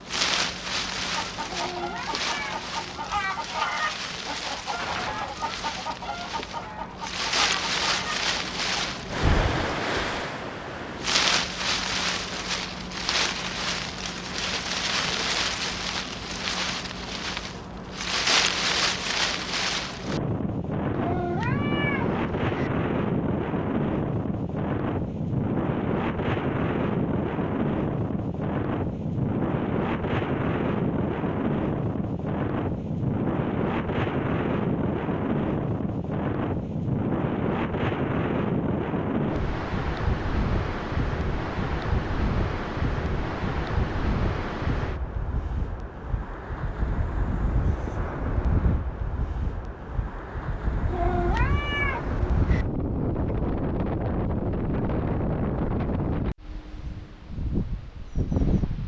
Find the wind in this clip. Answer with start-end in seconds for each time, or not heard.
0.0-58.8.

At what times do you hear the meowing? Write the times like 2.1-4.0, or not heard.
1.4-3.1, 20.9-22.7, 50.9-52.6.